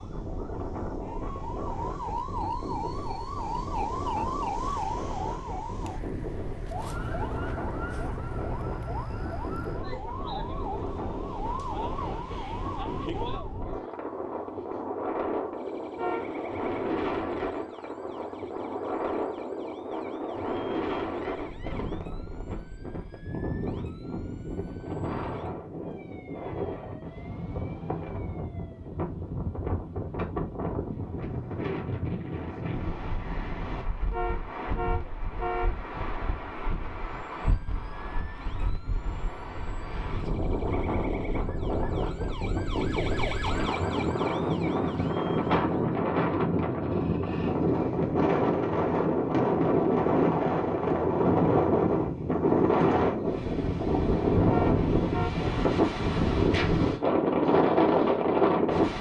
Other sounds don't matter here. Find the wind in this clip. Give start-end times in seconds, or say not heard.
0.0-58.9.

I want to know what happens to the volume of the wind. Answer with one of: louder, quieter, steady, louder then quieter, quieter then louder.
louder.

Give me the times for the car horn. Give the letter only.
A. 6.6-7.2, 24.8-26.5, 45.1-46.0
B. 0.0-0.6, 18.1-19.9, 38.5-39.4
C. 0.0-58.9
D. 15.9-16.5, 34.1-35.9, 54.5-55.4
D.